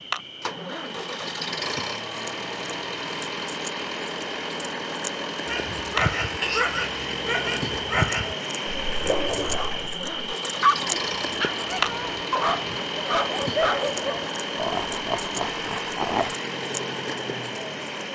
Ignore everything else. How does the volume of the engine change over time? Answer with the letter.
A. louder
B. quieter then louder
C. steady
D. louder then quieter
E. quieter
C.